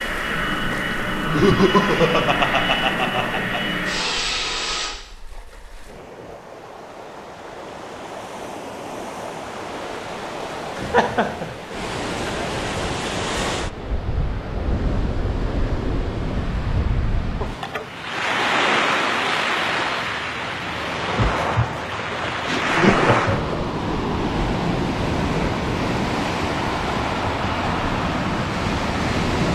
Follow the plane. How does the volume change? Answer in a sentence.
The loudness of the plane stays about the same.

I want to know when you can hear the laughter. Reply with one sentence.
You can hear the laughter from 1.2 to 3.6 s, from 10.8 to 11.6 s and from 22.4 to 23.7 s.